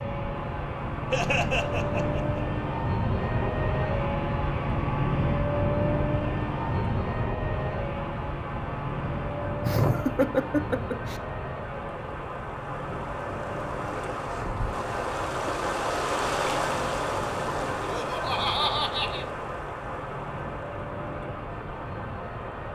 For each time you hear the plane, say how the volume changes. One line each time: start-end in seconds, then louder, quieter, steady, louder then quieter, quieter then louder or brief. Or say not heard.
0.0-22.7 quieter.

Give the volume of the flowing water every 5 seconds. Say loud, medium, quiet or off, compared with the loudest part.
medium, medium, medium, loud, medium.